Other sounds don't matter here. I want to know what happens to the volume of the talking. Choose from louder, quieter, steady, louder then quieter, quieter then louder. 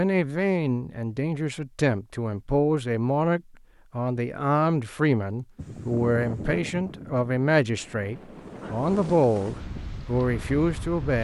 steady.